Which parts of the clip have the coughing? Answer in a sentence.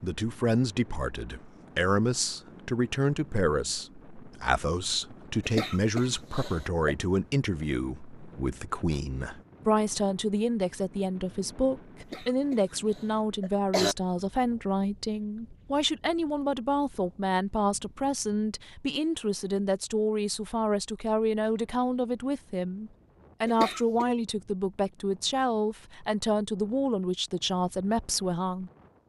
You can hear the coughing from 5.5 to 7.0 s, from 12.0 to 13.9 s and from 23.4 to 24.1 s.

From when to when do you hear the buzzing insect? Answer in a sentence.
You can't hear the buzzing insect here.